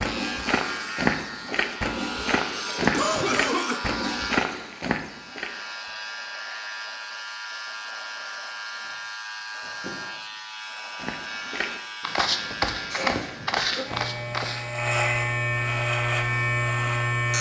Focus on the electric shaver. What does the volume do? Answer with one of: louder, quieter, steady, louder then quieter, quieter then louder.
louder.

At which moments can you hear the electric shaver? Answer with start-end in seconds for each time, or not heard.
0.0-17.3.